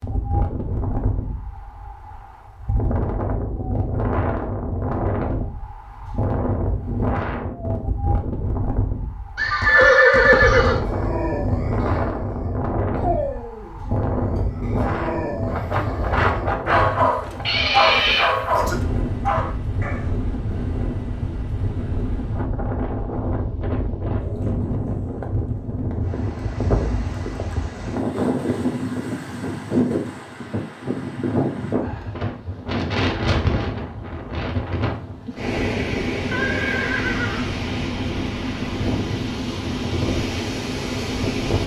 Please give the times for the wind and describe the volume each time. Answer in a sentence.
The wind can be heard from 0.0 to 41.6 s, at a steady volume.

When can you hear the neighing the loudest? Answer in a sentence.
The loudest moment of the neighing is at 10 seconds.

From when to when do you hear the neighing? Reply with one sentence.
You can hear the neighing from 9.3 to 10.8 s, from 17.4 to 18.4 s and from 36.3 to 37.5 s.